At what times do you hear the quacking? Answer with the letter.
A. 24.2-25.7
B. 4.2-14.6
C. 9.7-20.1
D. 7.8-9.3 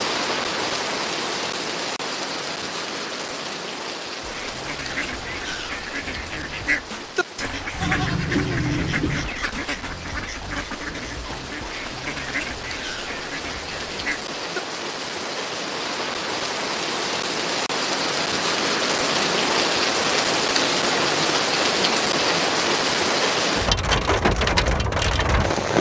B.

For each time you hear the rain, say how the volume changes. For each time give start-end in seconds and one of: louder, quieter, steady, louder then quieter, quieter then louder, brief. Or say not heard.
0.0-25.7 quieter then louder.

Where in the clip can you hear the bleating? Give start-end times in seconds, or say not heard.
7.8-9.3.